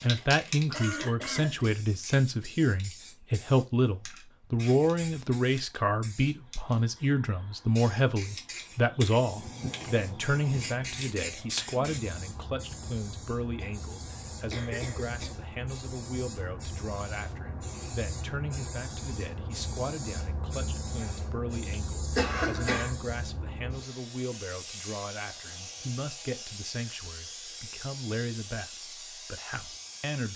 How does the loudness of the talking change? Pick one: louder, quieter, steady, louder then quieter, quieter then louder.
quieter.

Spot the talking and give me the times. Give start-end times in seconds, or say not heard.
0.0-30.3.